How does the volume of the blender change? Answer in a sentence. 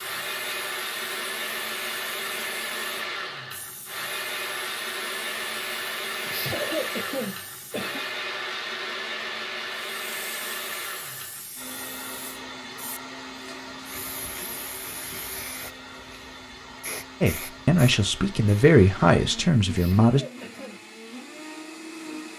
The loudness of the blender goes down.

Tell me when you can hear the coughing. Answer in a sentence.
You can hear the coughing from 6.2 to 8.1 s and from 19.7 to 20.8 s.